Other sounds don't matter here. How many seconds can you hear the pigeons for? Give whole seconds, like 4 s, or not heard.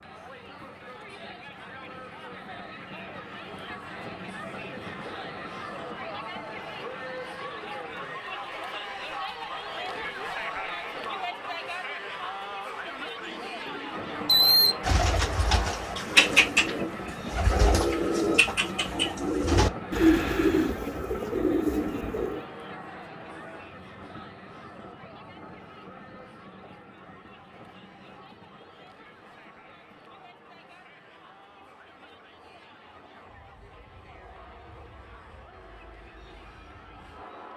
9 s.